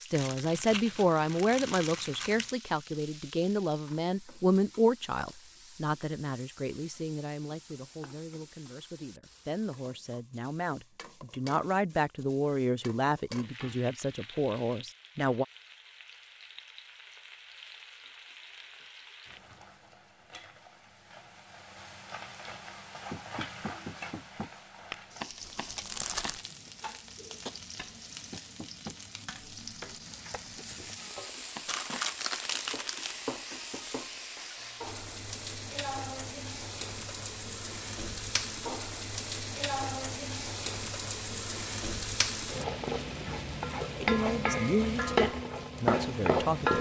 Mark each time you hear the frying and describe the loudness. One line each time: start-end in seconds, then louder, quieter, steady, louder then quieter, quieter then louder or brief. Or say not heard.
0.0-46.7 louder.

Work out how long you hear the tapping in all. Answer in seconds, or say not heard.
9 s.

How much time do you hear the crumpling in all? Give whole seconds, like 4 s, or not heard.
5 s.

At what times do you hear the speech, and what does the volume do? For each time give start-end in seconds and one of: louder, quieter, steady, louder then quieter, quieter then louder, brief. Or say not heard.
0.0-15.4 quieter then louder
44.0-46.7 brief.